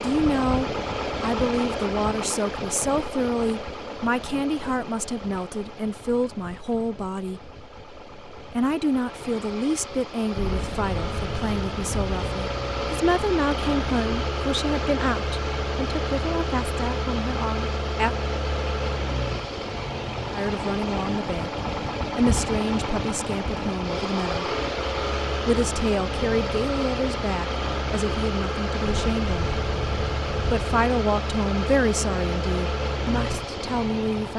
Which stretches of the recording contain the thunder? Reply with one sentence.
The thunder can be heard from 10.3 to 12.2 s and from 28.9 to 30.6 s.